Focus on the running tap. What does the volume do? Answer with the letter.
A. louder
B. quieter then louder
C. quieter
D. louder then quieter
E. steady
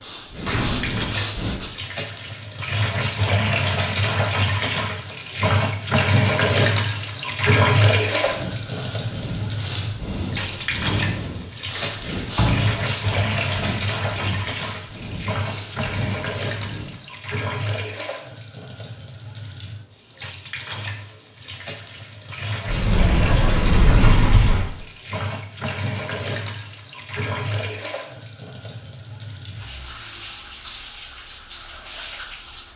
C.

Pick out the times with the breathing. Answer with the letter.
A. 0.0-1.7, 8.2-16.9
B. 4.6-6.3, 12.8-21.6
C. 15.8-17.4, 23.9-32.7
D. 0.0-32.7
A.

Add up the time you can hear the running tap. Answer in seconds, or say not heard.
33 s.